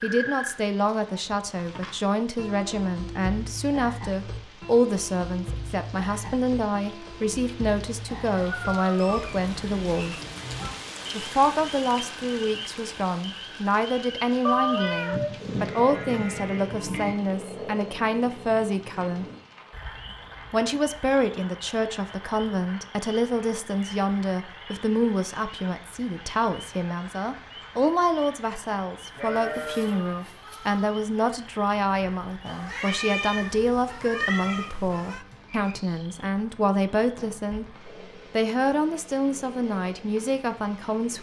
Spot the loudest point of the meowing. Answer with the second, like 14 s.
15 s.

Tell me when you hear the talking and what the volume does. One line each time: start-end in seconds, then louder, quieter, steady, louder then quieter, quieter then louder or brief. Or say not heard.
0.0-10.2 steady
11.2-19.2 steady
20.5-41.1 steady.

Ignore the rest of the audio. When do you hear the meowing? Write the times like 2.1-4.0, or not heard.
8.4-9.4, 14.4-15.3, 32.5-35.2.